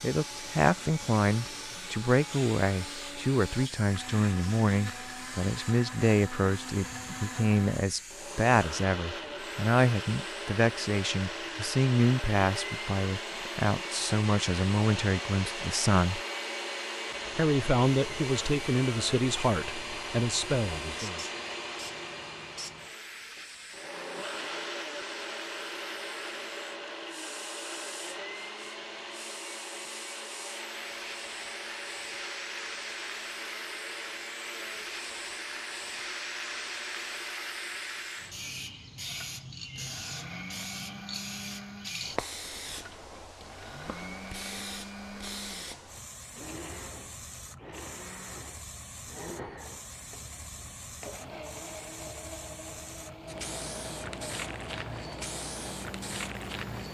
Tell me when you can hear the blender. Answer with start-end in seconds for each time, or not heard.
0.0-56.8.